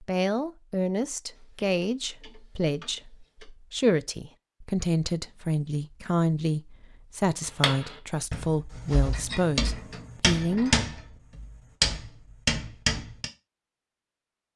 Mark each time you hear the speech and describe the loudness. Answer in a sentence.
The speech can be heard from 0.0 to 10.8 s, at a steady volume.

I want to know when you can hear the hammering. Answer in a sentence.
You can hear the hammering from 7.6 to 13.2 s.